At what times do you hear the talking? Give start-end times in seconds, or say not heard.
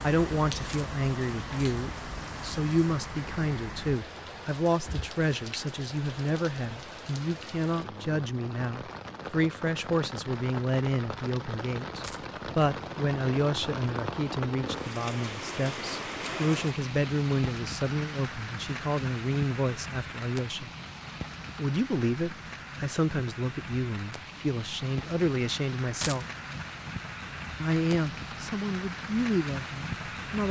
0.0-20.7, 21.6-26.2, 27.6-30.4.